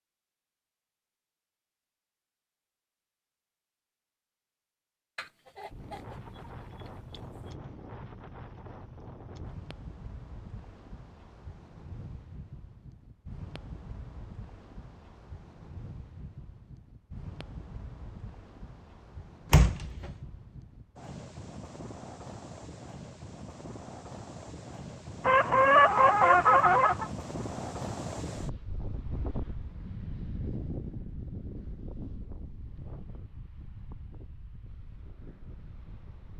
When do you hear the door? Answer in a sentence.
You can hear the door from 19.5 to 20.1 s.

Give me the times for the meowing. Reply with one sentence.
The meowing can't be heard in this clip.